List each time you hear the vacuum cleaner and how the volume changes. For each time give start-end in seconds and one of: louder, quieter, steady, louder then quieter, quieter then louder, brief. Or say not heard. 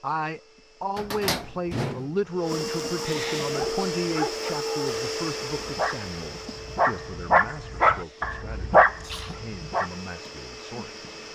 0.0-11.3 louder then quieter.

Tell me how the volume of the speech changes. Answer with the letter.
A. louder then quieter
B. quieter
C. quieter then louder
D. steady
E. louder
B.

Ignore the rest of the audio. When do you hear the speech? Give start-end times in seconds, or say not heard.
0.0-11.1.